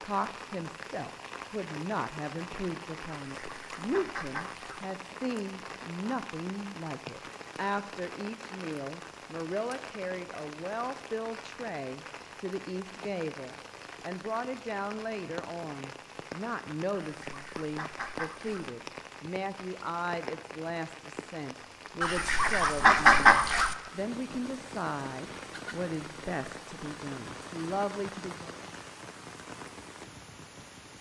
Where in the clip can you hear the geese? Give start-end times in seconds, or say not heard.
3.4-4.8, 16.9-18.7, 22.0-23.8.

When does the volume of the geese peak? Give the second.
23 s.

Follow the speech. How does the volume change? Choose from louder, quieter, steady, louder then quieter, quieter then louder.
steady.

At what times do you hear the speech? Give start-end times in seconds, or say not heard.
0.0-28.6.